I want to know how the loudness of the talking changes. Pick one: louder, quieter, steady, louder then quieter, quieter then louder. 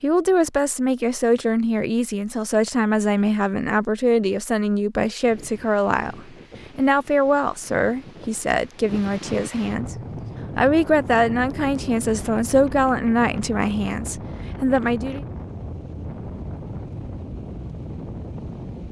steady.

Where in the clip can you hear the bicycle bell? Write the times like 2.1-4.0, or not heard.
not heard.